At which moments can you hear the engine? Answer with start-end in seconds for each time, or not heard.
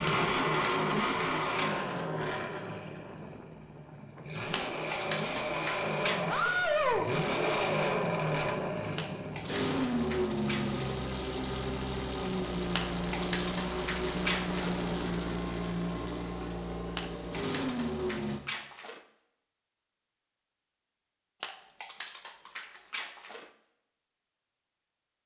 0.0-18.4.